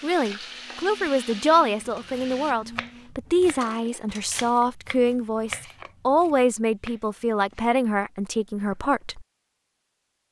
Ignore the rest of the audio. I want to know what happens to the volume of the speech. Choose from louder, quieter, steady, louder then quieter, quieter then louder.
steady.